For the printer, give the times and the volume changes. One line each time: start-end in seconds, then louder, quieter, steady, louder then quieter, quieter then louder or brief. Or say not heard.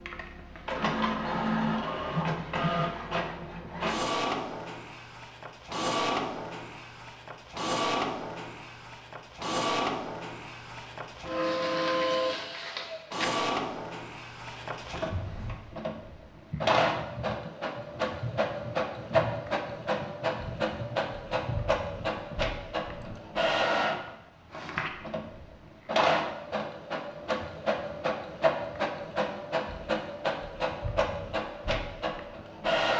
0.0-32.9 steady.